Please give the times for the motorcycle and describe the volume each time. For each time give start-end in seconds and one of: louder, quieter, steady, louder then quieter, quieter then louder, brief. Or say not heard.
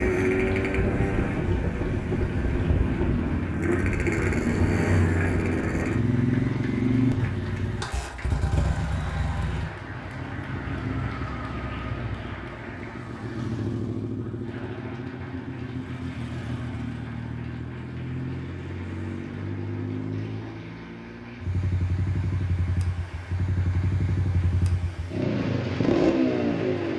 0.0-26.9 quieter then louder.